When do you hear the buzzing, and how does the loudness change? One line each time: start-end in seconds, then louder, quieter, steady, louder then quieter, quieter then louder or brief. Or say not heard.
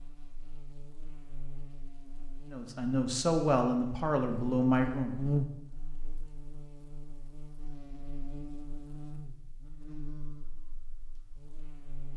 0.0-12.1 louder then quieter.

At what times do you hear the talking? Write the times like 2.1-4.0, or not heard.
2.5-5.2.